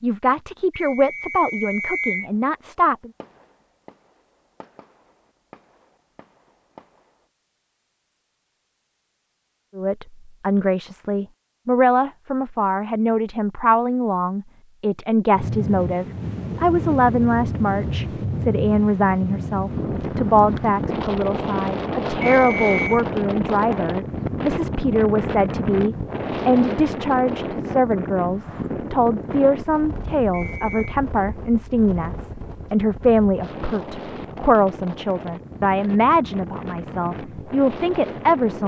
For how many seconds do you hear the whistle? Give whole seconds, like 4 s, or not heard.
3 s.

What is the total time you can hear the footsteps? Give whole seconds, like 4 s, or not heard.
not heard.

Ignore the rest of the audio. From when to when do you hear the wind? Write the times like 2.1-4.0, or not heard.
15.3-38.6.